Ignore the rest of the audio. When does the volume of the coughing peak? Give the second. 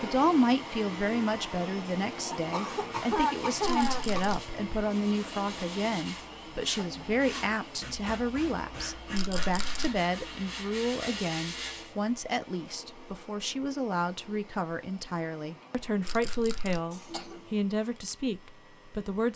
3 s.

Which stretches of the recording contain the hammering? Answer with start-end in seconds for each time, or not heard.
not heard.